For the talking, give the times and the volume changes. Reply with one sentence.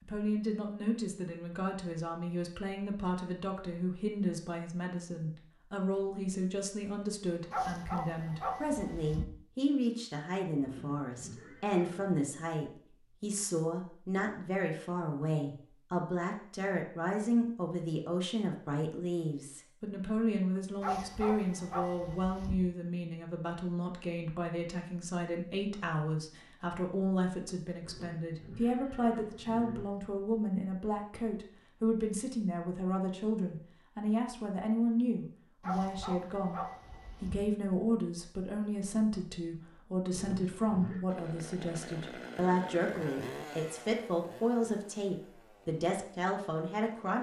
The talking can be heard from 0.0 to 47.1 s, at a steady volume.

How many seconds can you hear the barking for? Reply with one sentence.
You can hear the barking for 5 seconds altogether.